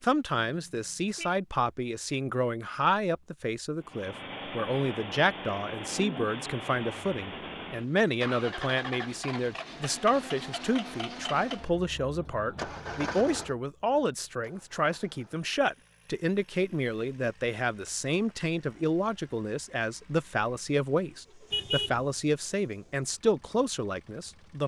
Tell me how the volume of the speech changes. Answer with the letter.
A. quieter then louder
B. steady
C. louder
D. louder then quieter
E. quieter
B.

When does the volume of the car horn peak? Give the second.
22 s.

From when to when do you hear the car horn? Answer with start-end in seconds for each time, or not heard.
0.5-1.4, 21.5-22.1.